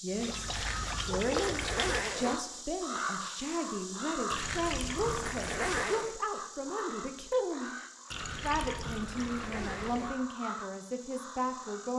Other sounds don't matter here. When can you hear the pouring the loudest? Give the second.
1 s.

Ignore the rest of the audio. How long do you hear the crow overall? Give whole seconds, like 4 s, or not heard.
12 s.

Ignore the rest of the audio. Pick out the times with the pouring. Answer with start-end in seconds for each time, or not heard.
0.2-2.2, 4.3-5.8, 8.1-10.1.